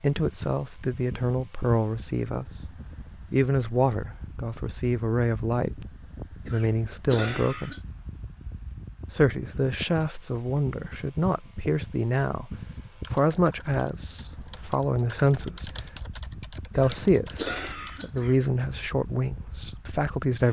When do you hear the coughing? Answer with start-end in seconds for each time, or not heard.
6.5-7.8, 16.7-18.4.